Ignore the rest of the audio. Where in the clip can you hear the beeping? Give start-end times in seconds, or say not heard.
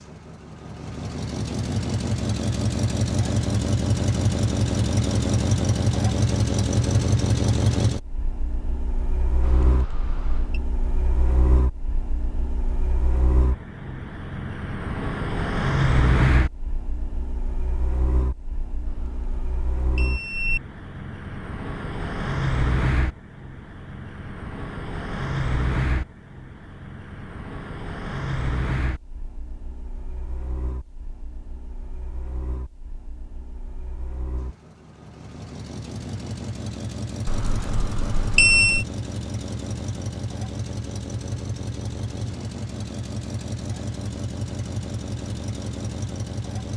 9.4-10.6, 18.9-20.6, 37.2-38.9.